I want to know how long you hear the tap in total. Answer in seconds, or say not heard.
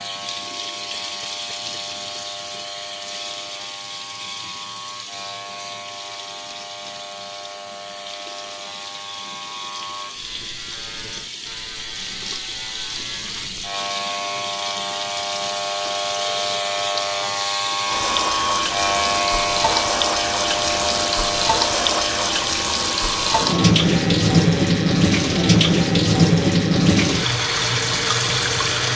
29 s.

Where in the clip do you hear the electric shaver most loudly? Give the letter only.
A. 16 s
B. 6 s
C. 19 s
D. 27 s
C.